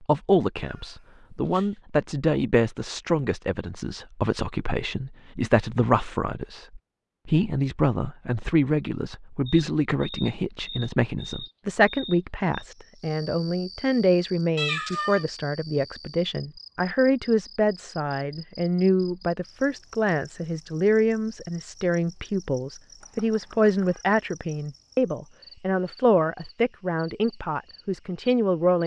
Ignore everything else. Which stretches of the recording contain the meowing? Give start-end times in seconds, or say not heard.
0.6-1.8, 14.6-15.2, 23.0-24.1.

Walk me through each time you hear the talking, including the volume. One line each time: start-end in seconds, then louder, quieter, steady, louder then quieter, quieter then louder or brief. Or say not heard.
0.0-28.8 steady.